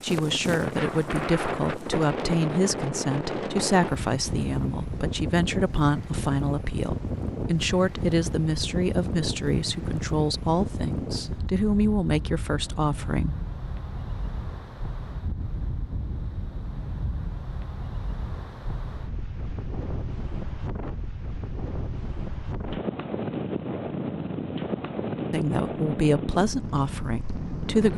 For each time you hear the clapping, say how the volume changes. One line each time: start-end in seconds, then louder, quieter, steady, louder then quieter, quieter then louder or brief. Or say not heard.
not heard.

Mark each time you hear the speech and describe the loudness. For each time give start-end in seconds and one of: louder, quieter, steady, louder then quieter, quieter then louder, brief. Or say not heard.
0.0-13.3 steady
25.3-27.9 brief.